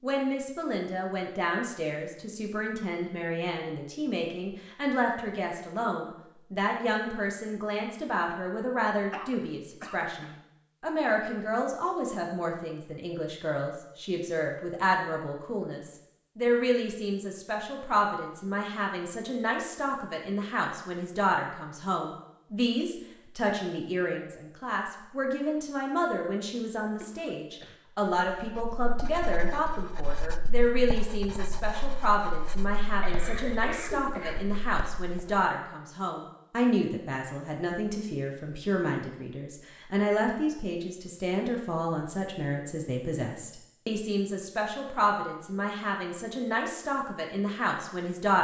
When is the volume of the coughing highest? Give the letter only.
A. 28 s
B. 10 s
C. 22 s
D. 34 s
D.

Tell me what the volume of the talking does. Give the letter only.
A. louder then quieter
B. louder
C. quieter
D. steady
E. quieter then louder
D.